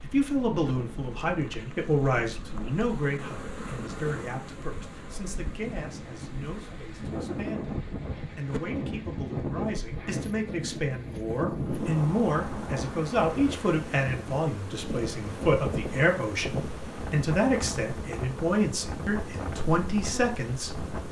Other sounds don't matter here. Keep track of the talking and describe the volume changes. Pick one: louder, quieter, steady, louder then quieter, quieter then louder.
quieter then louder.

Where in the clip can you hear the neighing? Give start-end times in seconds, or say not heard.
not heard.